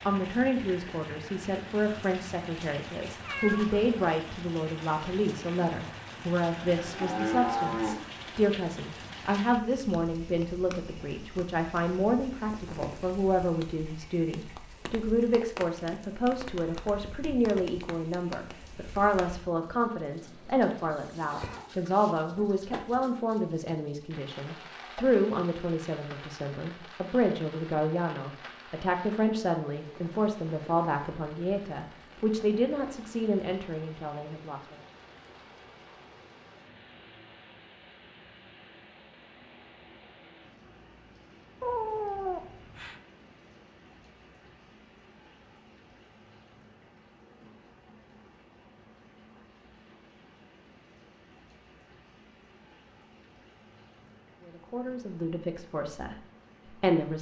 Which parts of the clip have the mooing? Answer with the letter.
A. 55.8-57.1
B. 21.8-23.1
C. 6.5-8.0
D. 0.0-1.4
C.